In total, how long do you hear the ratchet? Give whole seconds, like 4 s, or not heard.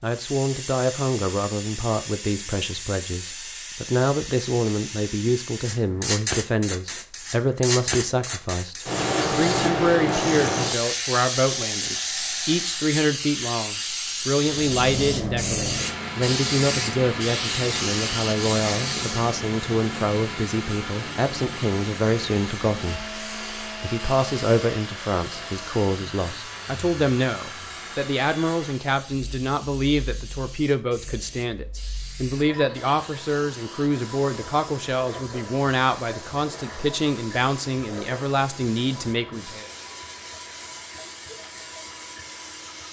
3 s.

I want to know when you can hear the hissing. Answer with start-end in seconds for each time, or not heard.
0.0-42.8.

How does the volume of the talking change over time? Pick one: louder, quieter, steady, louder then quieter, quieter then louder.
steady.